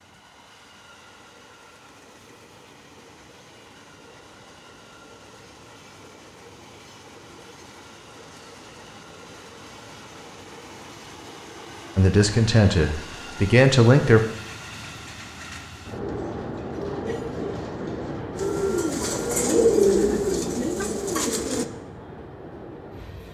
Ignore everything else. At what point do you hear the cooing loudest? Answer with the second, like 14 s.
20 s.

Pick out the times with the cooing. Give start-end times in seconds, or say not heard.
15.9-21.6.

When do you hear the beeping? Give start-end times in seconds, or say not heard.
not heard.